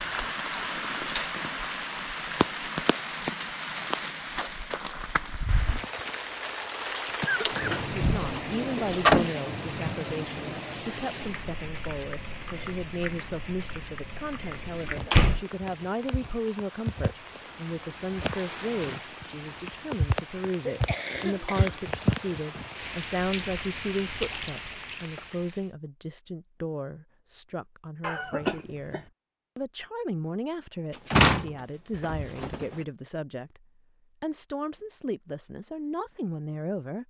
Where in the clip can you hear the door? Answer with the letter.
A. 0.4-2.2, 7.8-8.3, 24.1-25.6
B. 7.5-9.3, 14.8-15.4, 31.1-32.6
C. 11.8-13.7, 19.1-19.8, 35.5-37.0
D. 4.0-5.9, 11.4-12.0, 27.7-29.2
B.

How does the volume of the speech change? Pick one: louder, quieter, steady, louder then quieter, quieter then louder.
steady.